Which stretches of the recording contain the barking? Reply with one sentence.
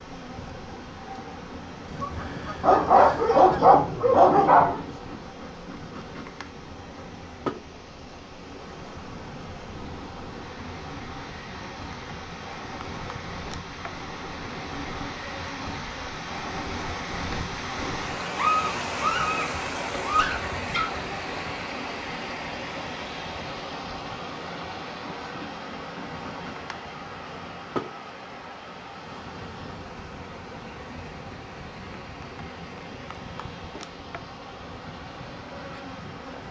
The barking can be heard from 2.6 to 4.9 s and from 18.4 to 20.9 s.